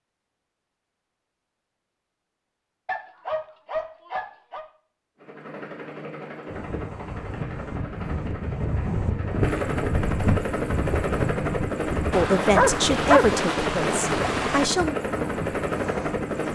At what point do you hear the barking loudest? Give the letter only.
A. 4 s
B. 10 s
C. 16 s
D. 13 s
D.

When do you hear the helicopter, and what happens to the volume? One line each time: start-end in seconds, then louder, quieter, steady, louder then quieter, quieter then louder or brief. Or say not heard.
5.2-16.5 louder.